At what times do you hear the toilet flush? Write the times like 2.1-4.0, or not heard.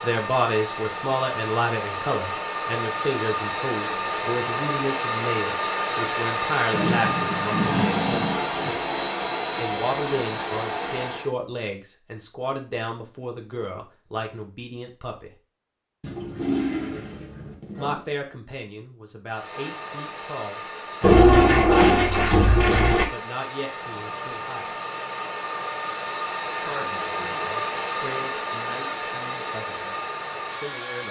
6.7-8.8, 16.0-18.1, 21.0-23.1.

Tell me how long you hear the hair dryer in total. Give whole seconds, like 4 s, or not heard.
23 s.